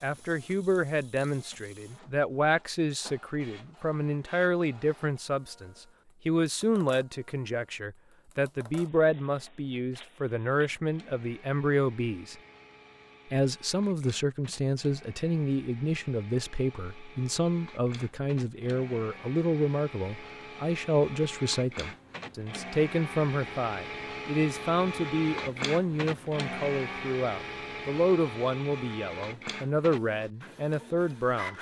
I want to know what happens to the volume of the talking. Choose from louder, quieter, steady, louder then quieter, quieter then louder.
steady.